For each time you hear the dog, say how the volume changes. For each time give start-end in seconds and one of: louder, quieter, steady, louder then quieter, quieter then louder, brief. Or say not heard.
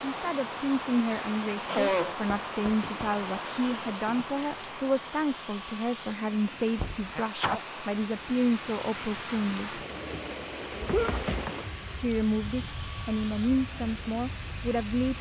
not heard.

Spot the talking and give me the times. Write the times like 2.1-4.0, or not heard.
0.0-9.8, 11.9-15.1.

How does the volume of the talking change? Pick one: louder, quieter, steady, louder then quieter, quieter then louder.
steady.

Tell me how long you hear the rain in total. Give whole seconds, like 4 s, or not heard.
15 s.